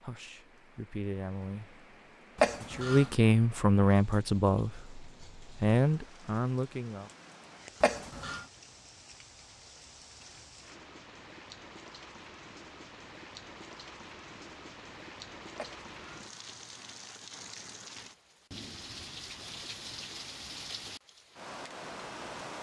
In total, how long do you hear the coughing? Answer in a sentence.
The coughing can be heard for 2 seconds in total.